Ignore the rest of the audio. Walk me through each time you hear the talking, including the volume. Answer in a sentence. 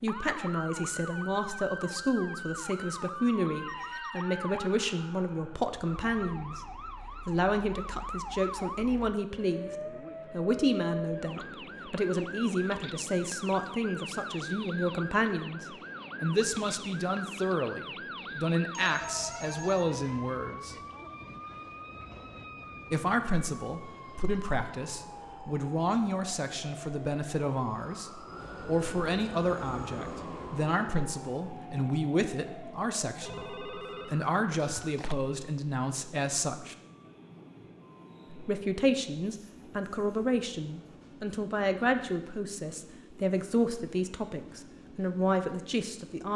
You can hear the talking from 0.0 to 6.6 s, at a steady volume; from 7.2 to 20.8 s, at a steady volume; from 22.9 to 36.8 s, at a steady volume; and from 38.3 to 46.3 s, at a steady volume.